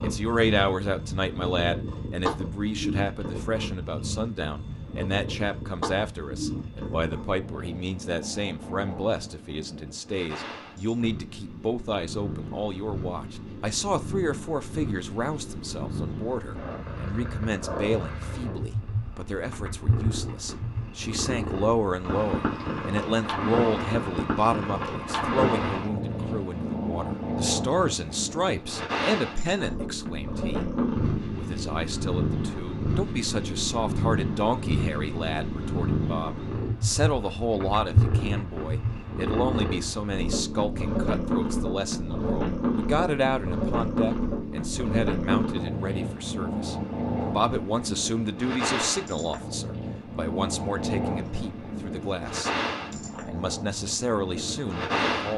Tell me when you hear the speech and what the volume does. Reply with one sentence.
The speech can be heard from 0.0 to 30.6 s, at a steady volume; and from 31.4 to 55.3 s, at a steady volume.